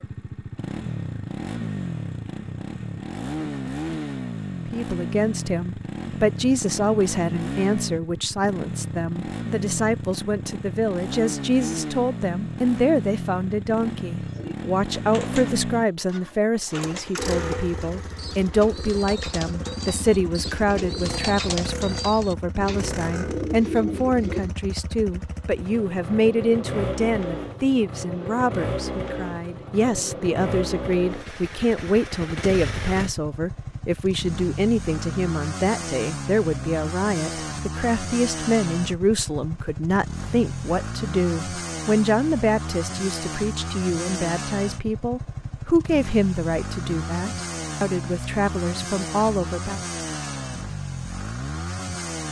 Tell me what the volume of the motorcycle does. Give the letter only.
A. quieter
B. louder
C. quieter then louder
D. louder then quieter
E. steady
E.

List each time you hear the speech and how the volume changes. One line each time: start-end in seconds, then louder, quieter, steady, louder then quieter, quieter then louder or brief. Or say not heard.
4.7-49.8 steady.